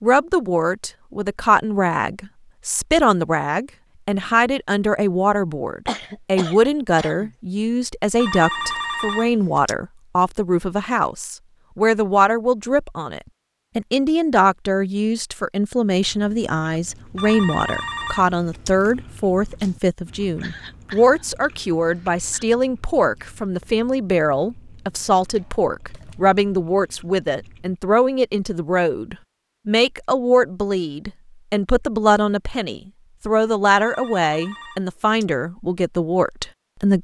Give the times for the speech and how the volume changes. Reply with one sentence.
The speech can be heard from 0.0 to 36.9 s, at a steady volume.